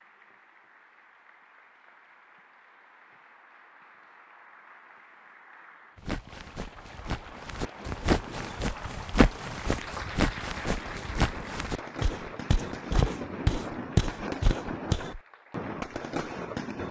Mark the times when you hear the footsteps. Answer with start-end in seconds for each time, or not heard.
6.0-15.2.